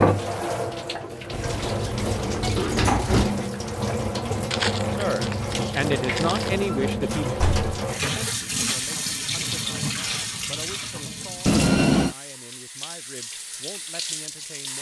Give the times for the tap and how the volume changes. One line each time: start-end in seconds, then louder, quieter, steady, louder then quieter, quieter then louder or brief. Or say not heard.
0.0-14.7 quieter.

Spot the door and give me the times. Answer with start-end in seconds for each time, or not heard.
1.3-3.4, 6.7-7.7, 11.4-12.2.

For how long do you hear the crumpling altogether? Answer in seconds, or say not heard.
2 s.